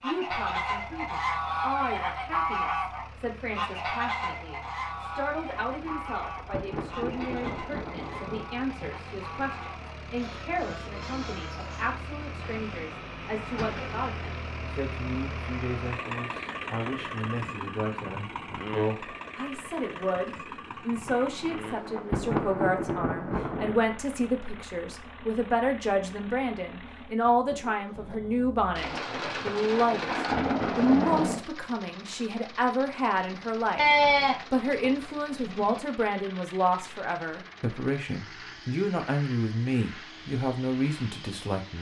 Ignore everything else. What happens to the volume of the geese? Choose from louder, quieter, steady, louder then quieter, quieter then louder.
quieter.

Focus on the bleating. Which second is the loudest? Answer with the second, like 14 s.
34 s.